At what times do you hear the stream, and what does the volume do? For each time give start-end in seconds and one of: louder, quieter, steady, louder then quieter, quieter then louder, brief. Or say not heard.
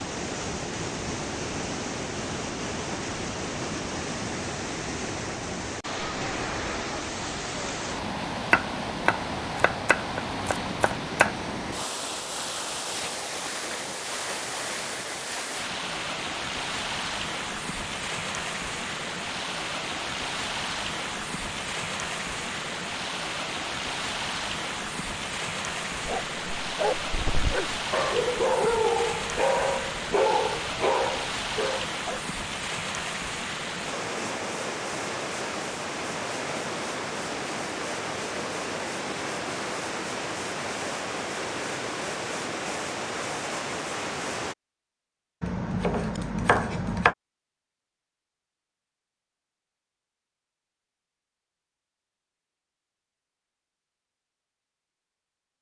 0.0-44.5 steady.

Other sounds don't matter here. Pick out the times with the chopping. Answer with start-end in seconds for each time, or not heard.
8.5-11.3, 45.4-47.1.